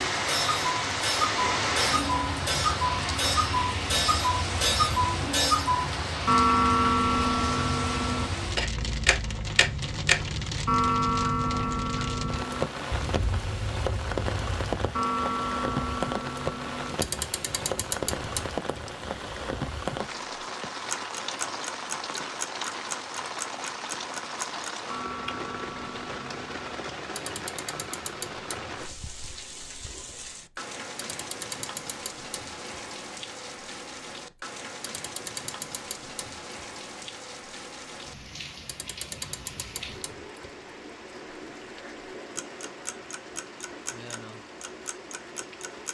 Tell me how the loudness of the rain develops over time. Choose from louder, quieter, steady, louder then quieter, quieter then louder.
quieter.